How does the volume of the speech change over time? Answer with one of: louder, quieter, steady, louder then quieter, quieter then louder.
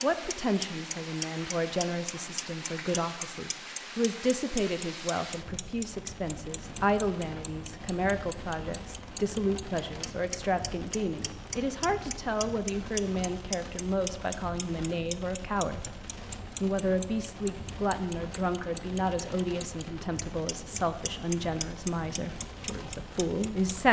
steady.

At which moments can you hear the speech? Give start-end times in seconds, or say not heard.
0.0-15.9, 16.6-23.8.